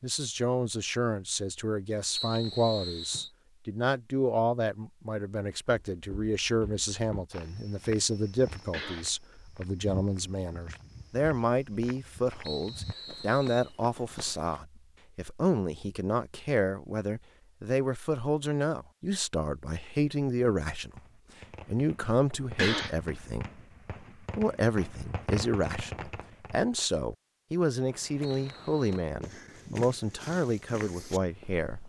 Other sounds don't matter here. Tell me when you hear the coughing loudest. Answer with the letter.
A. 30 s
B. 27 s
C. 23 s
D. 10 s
C.